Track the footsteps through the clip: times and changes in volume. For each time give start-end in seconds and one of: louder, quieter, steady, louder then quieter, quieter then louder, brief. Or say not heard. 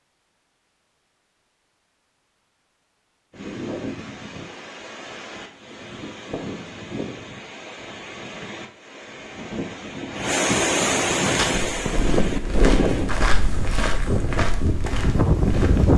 11.2-15.9 louder then quieter.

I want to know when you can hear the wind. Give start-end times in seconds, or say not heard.
3.3-15.9.